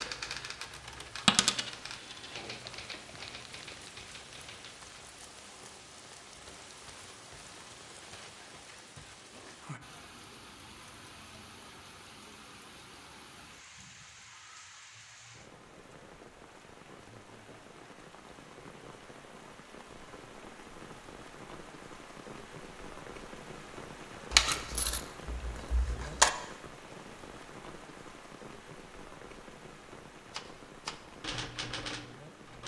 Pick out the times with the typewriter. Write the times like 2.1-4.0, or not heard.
0.0-4.8, 30.3-32.6.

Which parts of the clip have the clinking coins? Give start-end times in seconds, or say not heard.
1.2-2.2, 24.3-26.3.